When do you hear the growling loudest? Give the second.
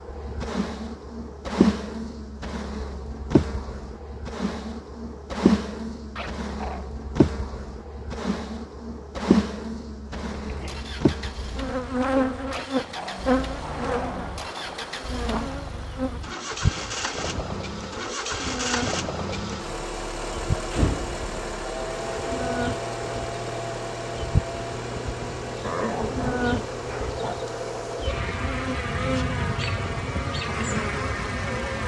26 s.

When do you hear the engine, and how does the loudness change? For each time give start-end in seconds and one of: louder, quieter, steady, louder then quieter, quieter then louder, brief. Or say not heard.
10.2-31.8 louder then quieter.